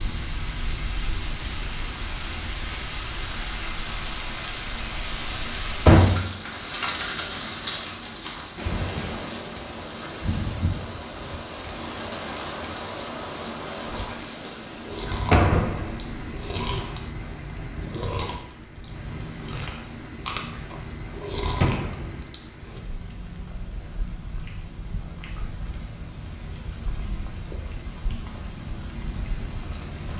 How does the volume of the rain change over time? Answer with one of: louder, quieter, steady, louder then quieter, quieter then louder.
quieter.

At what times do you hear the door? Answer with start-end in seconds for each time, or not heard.
5.8-6.9, 15.3-16.2, 21.6-22.1.